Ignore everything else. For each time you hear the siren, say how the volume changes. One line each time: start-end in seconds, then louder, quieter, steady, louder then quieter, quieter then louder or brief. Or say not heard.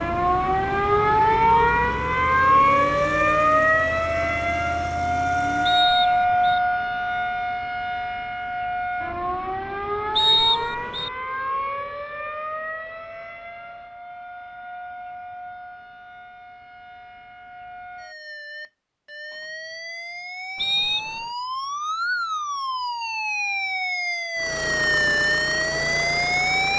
0.0-26.7 quieter then louder.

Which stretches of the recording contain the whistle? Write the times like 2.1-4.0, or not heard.
5.7-6.6, 10.2-11.1, 20.6-21.2.